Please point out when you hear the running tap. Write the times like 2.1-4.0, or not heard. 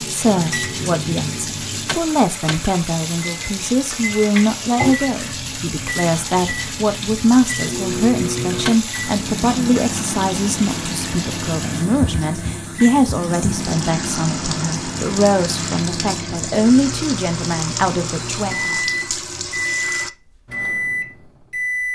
0.0-20.1.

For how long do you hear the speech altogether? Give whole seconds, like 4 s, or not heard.
19 s.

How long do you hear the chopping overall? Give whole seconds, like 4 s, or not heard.
not heard.